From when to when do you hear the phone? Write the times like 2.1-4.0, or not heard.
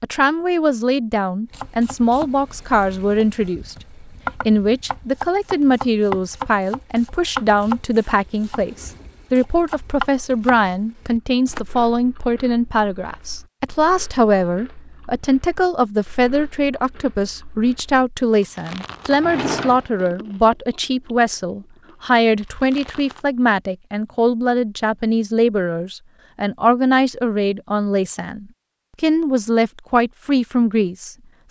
not heard.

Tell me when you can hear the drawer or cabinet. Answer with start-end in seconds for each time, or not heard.
19.1-20.1.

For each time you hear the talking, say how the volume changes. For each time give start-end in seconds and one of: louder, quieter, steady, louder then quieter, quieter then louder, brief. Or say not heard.
0.0-31.4 steady.